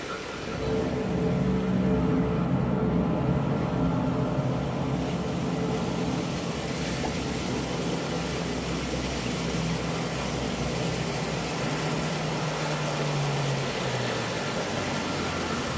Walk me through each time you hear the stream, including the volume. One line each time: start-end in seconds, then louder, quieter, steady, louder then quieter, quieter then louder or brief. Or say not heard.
0.0-15.7 louder.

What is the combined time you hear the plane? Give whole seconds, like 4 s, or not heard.
16 s.